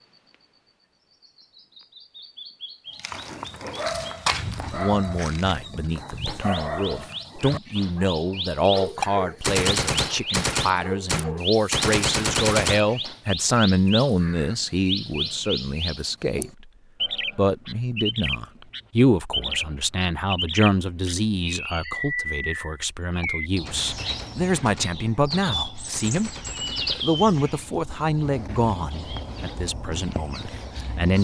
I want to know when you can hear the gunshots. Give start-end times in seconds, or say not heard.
9.0-12.9, 23.2-27.1.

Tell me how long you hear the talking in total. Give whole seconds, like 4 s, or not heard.
26 s.